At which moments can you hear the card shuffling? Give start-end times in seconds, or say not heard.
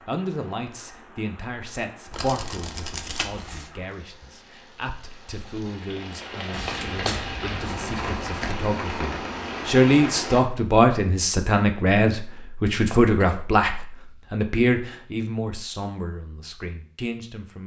2.1-3.7, 6.5-8.6, 12.8-13.3.